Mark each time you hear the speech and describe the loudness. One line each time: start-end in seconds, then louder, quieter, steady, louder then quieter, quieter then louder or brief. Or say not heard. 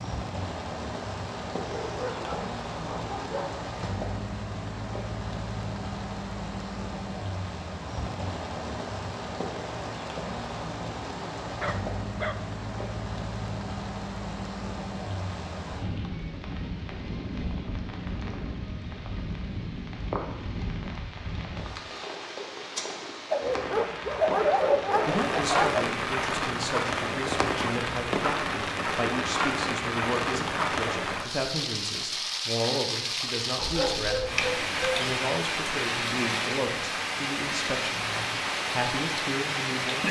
25.1-40.0 steady.